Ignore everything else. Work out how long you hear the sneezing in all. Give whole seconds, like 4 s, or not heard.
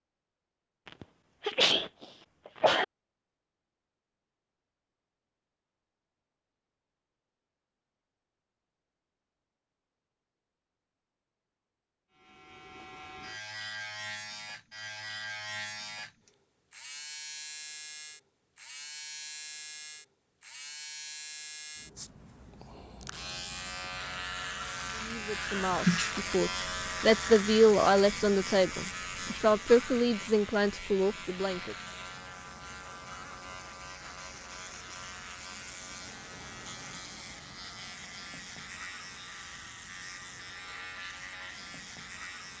3 s.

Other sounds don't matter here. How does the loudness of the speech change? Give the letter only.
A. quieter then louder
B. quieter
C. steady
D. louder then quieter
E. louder
D.